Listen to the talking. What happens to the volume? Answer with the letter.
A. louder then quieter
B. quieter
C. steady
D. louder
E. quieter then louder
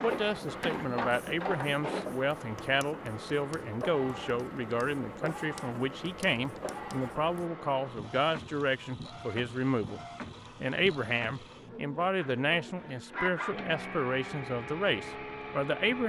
C.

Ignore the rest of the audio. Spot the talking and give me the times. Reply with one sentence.
The talking can be heard from 0.0 to 10.0 s and from 10.6 to 16.0 s.